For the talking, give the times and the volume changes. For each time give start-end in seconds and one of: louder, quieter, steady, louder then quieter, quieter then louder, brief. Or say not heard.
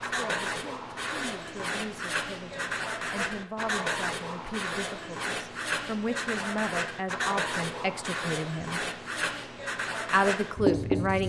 0.0-8.8 louder
10.1-11.2 brief.